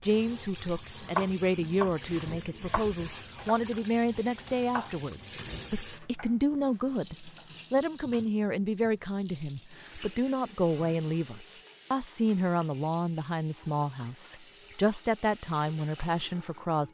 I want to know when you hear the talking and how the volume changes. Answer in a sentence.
The talking can be heard from 0.0 to 16.8 s, at a steady volume.